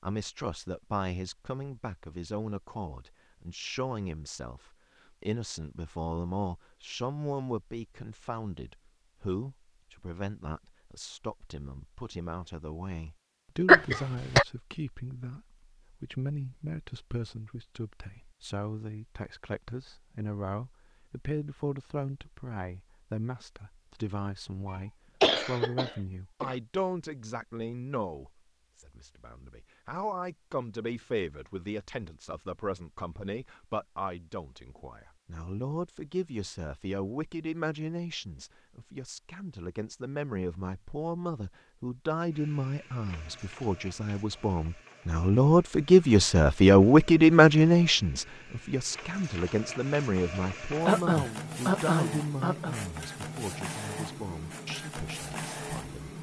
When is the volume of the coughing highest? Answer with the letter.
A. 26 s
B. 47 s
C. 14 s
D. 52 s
C.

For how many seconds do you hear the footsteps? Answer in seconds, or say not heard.
not heard.